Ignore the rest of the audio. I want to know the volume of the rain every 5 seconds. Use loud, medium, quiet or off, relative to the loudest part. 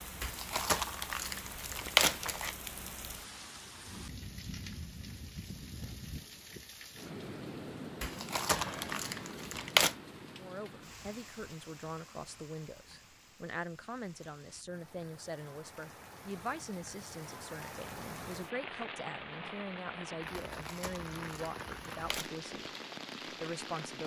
loud, loud, medium, loud, loud.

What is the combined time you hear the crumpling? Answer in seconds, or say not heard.
6 s.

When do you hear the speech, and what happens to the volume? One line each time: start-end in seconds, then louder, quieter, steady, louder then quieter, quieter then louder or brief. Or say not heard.
10.3-22.7 steady
23.3-24.0 brief.